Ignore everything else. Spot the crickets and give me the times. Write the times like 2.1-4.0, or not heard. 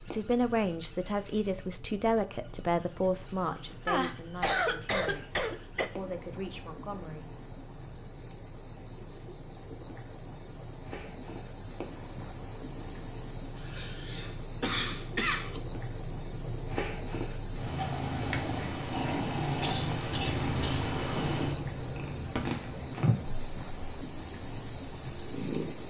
0.0-25.8.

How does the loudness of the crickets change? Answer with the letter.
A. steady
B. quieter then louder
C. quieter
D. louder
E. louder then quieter
D.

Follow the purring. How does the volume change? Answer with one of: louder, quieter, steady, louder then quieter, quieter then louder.
louder.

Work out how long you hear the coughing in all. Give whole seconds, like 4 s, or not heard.
5 s.